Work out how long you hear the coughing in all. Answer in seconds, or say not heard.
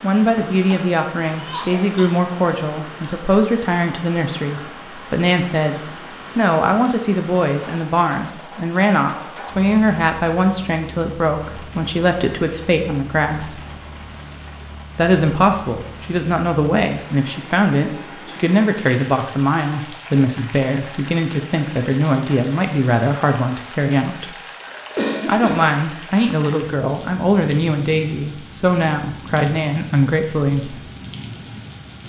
3 s.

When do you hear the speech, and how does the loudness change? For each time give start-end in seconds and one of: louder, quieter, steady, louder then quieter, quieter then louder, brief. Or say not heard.
0.0-13.6 steady
14.9-24.4 steady
25.2-30.8 steady.